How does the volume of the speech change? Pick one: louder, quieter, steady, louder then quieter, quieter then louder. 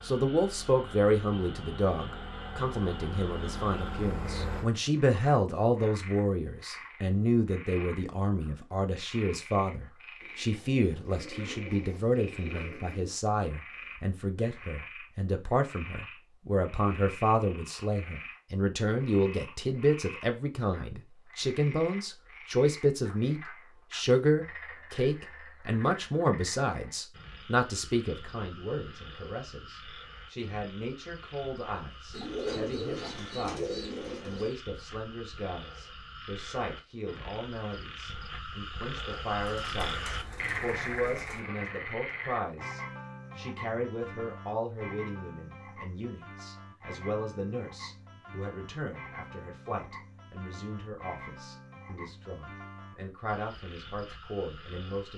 quieter.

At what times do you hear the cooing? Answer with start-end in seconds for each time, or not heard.
10.2-13.1, 32.1-34.5, 39.4-41.4.